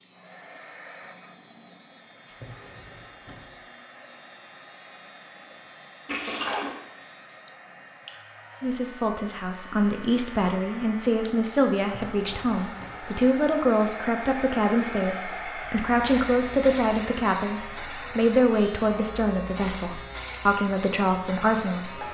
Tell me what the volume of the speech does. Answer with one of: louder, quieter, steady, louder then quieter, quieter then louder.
steady.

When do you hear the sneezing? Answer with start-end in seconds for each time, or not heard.
not heard.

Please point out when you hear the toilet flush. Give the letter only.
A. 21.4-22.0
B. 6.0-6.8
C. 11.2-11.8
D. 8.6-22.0
B.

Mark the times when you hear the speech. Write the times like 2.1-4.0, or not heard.
8.6-22.0.